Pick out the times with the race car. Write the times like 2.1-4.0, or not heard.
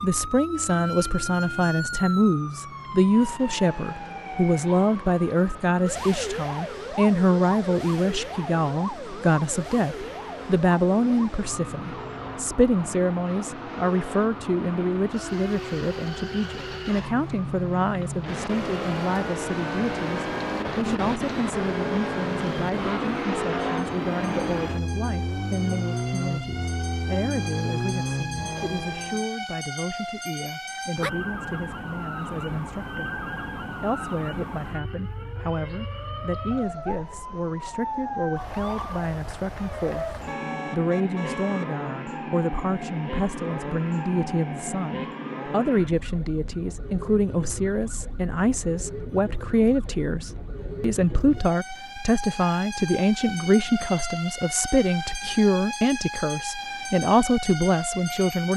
0.0-29.2.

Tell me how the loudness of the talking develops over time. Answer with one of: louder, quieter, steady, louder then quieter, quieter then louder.
quieter then louder.